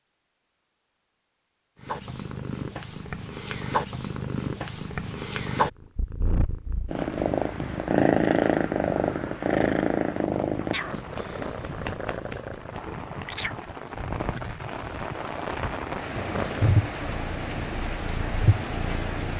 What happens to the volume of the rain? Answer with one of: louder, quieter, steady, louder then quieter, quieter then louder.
louder.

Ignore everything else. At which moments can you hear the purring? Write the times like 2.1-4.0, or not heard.
1.8-13.6, 16.1-19.3.